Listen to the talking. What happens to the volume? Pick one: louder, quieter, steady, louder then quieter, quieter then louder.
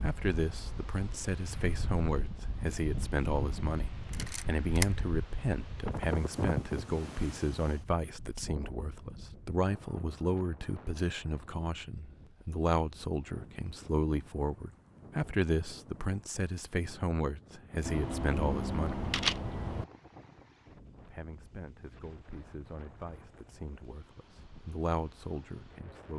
quieter.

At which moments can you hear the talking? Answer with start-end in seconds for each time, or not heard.
0.0-18.9, 21.0-26.1.